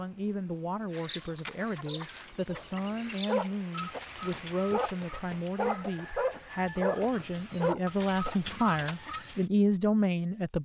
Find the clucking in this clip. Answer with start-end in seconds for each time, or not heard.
0.9-9.4.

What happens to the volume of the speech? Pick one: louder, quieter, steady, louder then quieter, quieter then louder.
louder.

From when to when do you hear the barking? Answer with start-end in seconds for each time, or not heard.
1.7-8.3.